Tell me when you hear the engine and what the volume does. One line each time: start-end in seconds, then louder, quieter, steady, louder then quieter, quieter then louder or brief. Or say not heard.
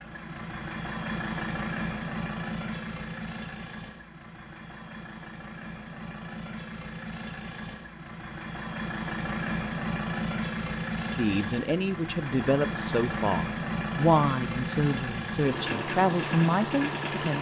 0.0-17.3 quieter then louder.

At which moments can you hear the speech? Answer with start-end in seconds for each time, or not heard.
11.2-17.3.